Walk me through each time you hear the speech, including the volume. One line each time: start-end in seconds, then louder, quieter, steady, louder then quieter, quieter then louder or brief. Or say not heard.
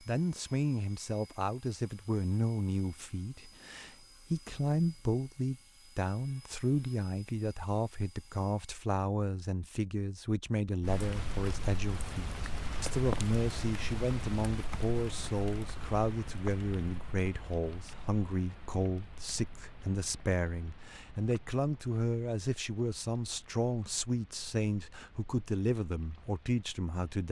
0.0-27.2 steady.